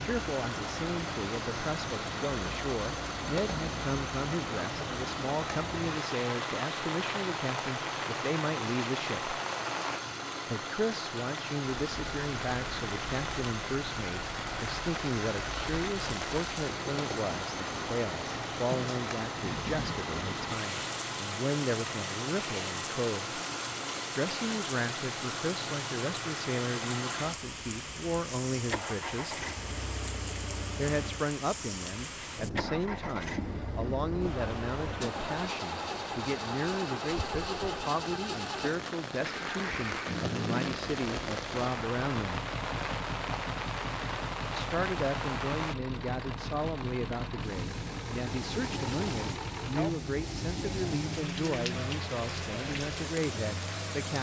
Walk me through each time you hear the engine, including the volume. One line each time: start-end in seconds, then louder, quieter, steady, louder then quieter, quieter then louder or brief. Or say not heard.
0.0-54.1 steady.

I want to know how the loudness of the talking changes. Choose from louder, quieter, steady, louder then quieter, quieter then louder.
steady.